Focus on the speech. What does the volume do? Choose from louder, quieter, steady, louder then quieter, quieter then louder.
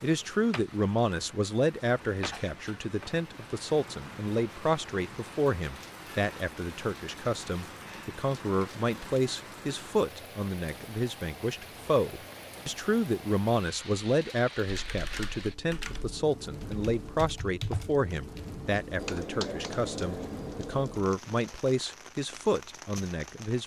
steady.